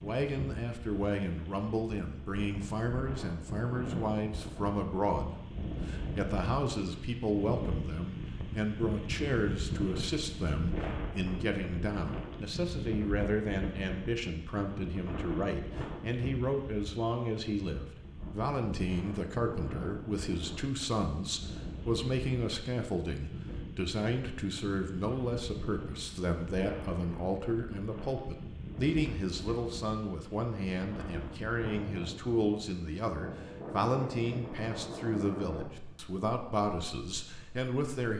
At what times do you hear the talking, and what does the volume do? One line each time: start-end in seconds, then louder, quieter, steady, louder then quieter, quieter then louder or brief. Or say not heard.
0.0-38.1 steady.